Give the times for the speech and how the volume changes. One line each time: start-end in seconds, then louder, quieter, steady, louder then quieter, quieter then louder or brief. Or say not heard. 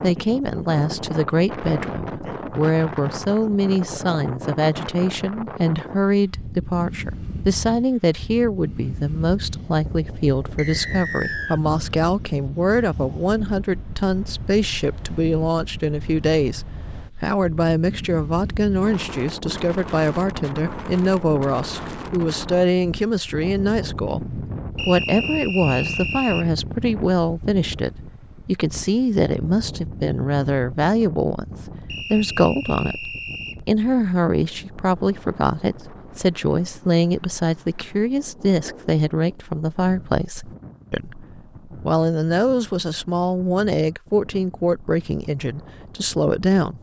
0.0-46.7 steady.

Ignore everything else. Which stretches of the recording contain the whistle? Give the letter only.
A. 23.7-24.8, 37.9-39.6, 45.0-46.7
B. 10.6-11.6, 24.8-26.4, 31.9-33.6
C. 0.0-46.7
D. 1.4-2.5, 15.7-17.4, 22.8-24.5
B.